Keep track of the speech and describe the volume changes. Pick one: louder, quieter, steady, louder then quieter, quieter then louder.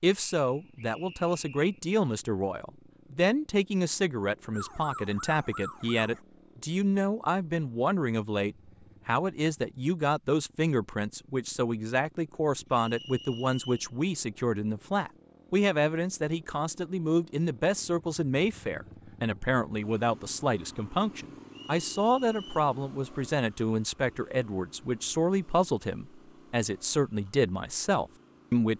steady.